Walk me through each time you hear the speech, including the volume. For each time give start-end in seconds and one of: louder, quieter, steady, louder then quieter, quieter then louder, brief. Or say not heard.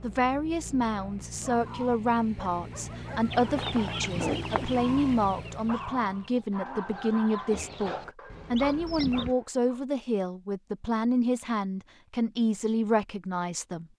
0.0-13.8 steady.